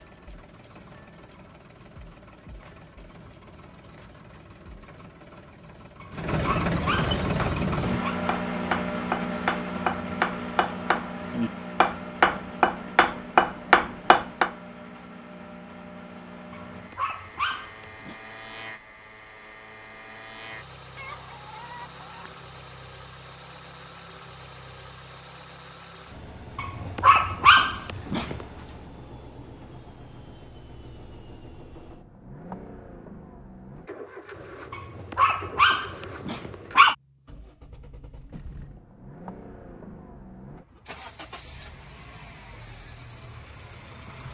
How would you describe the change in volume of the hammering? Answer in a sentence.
The volume of the hammering goes up.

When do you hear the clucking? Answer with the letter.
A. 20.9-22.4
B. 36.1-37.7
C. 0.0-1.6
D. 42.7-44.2
A.